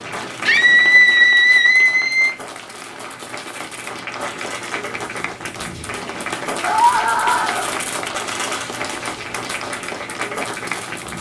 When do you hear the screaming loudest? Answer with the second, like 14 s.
1 s.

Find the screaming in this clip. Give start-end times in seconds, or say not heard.
0.5-2.4, 6.6-7.7.